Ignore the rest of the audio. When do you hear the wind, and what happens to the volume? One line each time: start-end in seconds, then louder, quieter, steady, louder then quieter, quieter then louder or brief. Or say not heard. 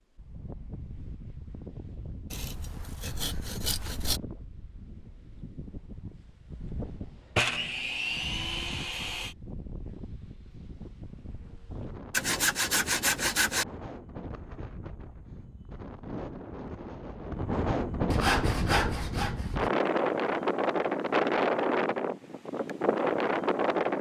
0.1-23.9 louder.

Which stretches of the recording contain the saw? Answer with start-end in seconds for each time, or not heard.
2.3-4.2, 7.3-9.3, 12.1-13.7, 18.1-19.7.